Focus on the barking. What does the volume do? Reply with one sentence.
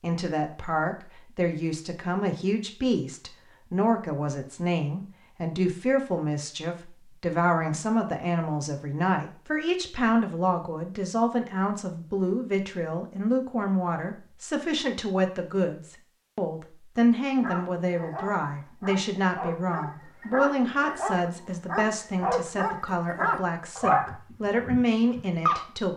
The volume of the barking goes up.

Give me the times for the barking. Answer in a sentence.
The barking can be heard from 17.4 to 25.6 s.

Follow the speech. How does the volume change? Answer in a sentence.
The loudness of the speech stays about the same.